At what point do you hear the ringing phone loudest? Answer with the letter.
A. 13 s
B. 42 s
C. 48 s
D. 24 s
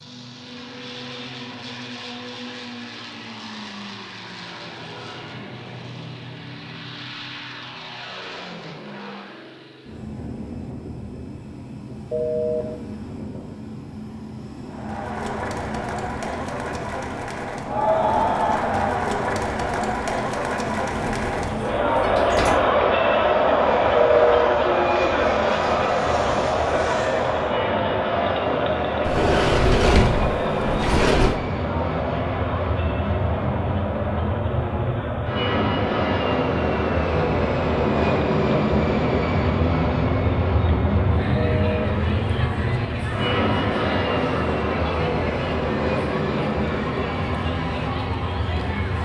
D.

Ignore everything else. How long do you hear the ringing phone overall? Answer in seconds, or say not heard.
2 s.